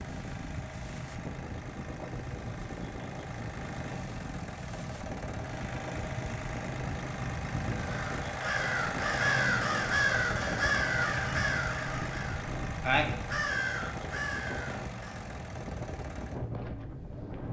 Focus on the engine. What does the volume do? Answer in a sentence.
The loudness of the engine goes up, then down.